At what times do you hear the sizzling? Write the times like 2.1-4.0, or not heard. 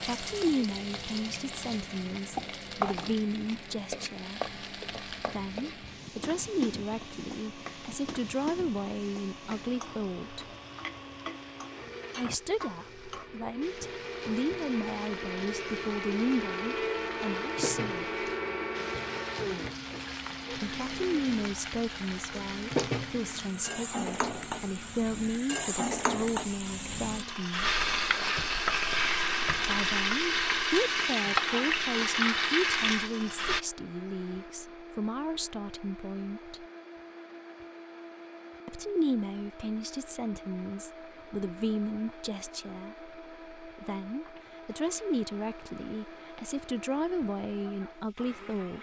0.0-33.6.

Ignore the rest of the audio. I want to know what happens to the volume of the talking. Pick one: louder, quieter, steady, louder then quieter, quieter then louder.
steady.